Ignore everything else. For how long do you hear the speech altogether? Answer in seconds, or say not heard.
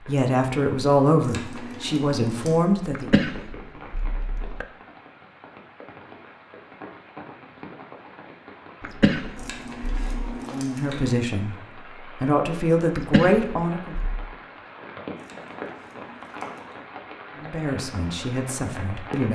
9 s.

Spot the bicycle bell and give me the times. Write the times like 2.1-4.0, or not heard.
not heard.